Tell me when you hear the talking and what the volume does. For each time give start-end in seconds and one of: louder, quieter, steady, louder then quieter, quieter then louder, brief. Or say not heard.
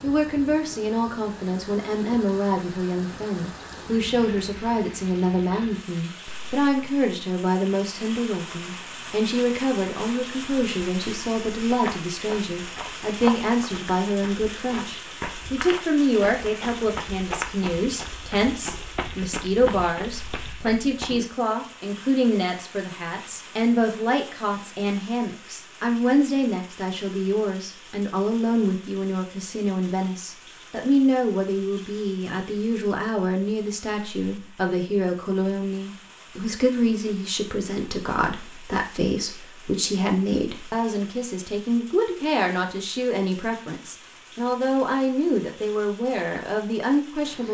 0.0-47.4 steady.